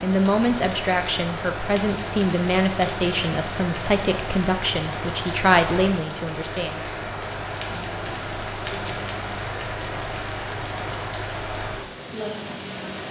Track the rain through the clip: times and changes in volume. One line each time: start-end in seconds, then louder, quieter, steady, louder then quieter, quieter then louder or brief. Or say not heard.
0.0-13.0 steady.